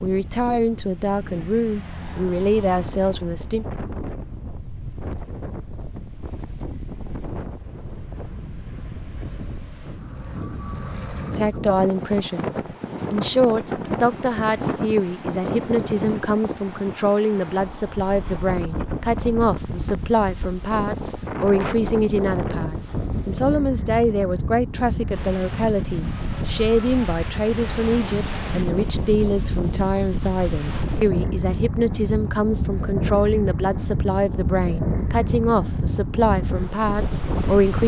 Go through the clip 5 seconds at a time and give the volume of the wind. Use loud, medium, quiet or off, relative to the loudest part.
medium, medium, loud, loud, loud, loud, loud, loud.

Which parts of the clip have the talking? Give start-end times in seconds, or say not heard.
0.0-3.6, 11.3-12.5, 13.1-37.8.